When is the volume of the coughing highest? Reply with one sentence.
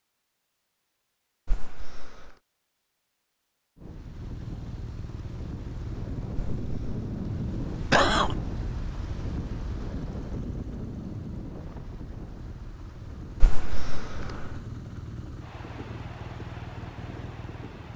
The loudest moment of the coughing is at 8 seconds.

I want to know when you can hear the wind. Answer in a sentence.
The wind can be heard from 3.8 to 17.9 s.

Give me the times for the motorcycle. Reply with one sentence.
The motorcycle can be heard from 3.9 to 17.9 s.